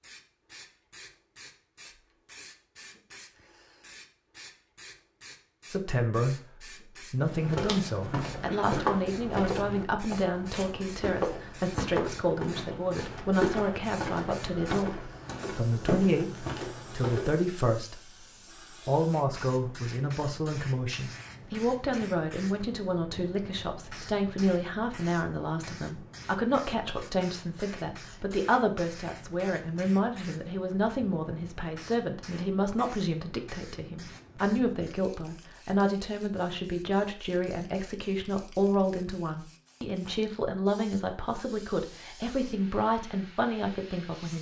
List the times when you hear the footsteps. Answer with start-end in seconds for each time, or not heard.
7.2-17.6.